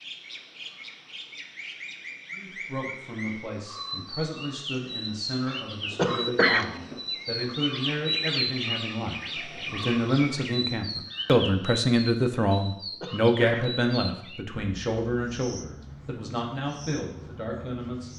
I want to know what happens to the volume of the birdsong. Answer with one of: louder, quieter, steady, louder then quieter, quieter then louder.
louder then quieter.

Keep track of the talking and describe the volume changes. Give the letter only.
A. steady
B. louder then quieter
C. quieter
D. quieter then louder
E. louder
B.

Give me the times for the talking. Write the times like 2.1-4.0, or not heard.
2.4-18.1.